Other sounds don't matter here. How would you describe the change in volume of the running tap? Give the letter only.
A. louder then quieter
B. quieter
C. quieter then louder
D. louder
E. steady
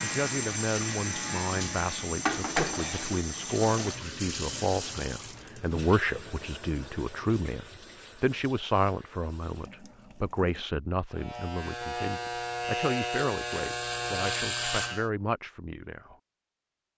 B.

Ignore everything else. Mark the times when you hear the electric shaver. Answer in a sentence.
You can hear the electric shaver from 0.0 to 1.9 s and from 11.1 to 15.1 s.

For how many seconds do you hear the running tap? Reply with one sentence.
You can hear the running tap for 11 seconds altogether.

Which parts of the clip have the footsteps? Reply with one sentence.
The footsteps can't be heard in this clip.